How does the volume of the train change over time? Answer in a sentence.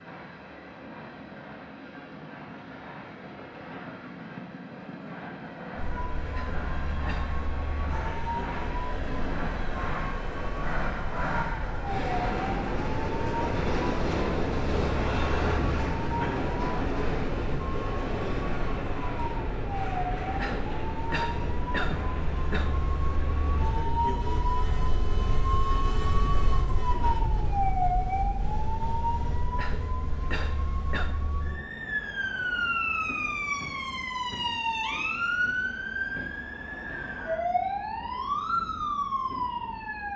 The loudness of the train goes up, then down.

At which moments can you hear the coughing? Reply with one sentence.
The coughing can be heard from 6.3 to 7.3 s, from 20.4 to 22.8 s and from 29.6 to 31.2 s.